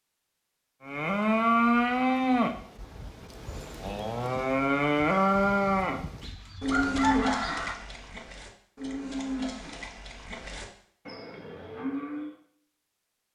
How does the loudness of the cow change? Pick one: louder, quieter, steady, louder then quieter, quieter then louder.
quieter.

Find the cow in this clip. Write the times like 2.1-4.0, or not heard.
0.8-12.3.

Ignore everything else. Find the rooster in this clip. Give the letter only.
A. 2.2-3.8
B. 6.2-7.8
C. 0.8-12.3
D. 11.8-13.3
B.